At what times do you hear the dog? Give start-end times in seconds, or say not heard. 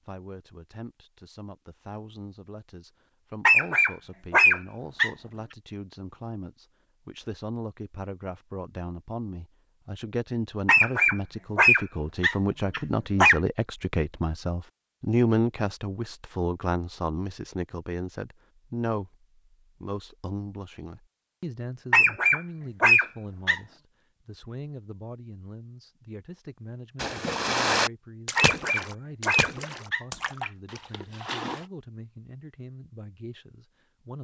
3.5-5.1, 10.7-13.4, 21.9-23.6, 28.4-30.5.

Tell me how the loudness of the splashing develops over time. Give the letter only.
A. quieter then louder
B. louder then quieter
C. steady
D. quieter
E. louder
D.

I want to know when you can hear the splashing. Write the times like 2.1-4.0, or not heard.
26.9-31.6.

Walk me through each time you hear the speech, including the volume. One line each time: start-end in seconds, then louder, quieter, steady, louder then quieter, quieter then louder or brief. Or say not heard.
0.1-34.1 louder then quieter.